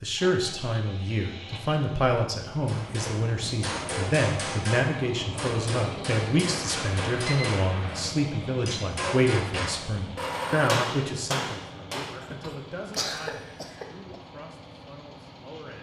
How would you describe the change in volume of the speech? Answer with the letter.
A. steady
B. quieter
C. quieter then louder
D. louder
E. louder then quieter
B.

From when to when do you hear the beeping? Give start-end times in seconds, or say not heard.
6.5-8.2.